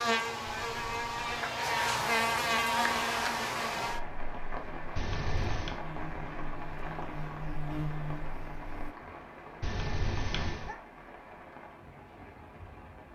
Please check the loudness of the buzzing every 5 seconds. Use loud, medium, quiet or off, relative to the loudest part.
loud, medium, off.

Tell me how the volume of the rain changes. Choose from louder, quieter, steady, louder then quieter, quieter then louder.
quieter.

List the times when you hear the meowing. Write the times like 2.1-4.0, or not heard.
0.5-1.4, 5.0-5.8, 9.6-10.8.